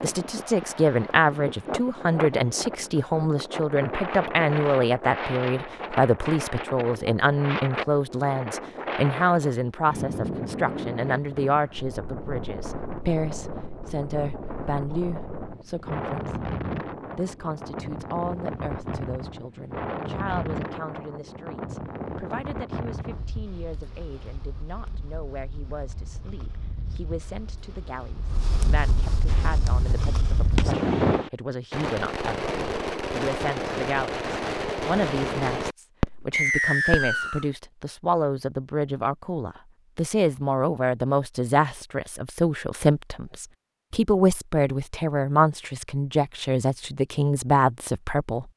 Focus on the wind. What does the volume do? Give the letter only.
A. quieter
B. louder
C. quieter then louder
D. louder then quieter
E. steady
E.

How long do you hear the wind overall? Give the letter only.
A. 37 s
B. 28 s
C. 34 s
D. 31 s
D.